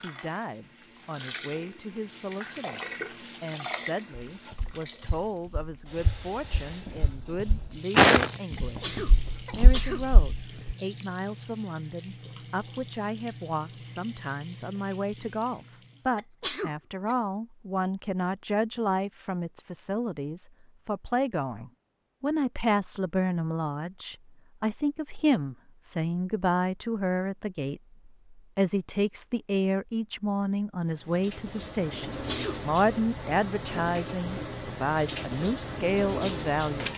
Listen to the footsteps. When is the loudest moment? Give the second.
8 s.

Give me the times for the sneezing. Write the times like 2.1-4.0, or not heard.
8.6-10.2, 16.1-17.1, 32.0-32.5.